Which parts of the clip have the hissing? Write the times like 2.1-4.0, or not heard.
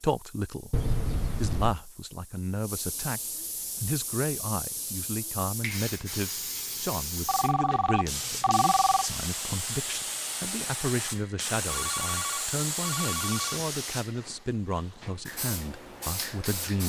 0.0-16.8.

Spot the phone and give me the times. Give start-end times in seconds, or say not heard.
0.7-1.8, 7.2-9.1, 11.7-13.6.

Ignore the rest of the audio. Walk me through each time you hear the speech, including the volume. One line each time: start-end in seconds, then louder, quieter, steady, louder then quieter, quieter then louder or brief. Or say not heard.
0.0-0.7 brief
1.4-16.8 steady.